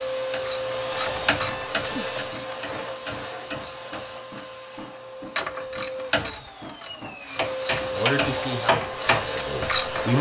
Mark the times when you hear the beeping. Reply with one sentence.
You can hear the beeping from 0.9 to 2.4 s.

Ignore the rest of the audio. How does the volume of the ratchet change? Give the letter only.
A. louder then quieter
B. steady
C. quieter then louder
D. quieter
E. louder
C.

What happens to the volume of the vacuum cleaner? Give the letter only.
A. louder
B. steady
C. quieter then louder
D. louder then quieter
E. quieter
C.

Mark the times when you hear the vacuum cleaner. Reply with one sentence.
You can hear the vacuum cleaner from 0.0 to 10.1 s.